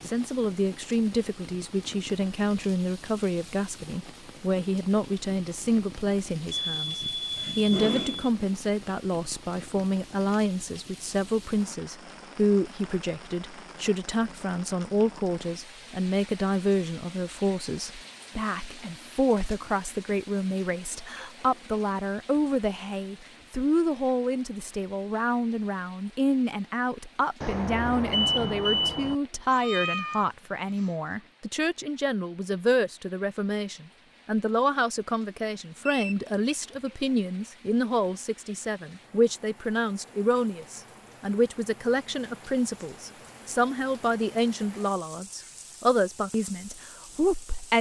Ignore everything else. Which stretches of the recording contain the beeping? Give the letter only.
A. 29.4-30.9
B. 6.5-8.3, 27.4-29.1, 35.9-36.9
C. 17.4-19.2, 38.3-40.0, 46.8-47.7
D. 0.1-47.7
B.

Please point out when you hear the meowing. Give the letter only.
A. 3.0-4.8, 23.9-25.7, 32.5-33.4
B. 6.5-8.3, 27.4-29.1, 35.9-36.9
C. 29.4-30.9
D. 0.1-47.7
C.